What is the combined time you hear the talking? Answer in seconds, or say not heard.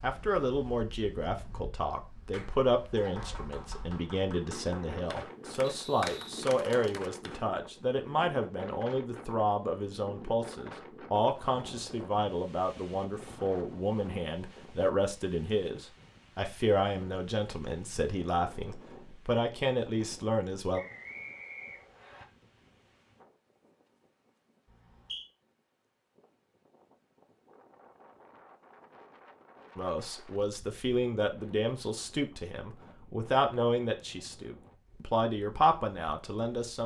28 s.